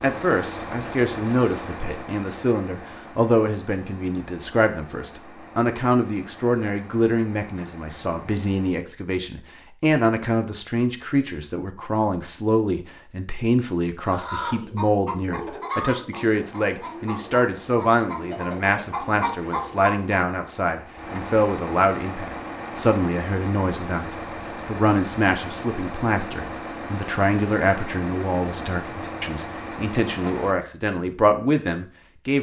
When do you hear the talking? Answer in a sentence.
You can hear the talking from 0.0 to 32.3 s.